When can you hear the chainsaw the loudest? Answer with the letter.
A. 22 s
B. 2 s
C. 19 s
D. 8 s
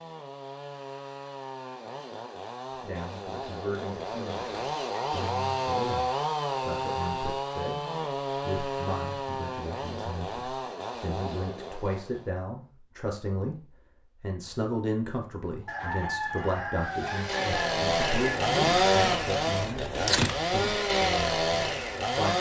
C.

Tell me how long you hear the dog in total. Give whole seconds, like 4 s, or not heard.
not heard.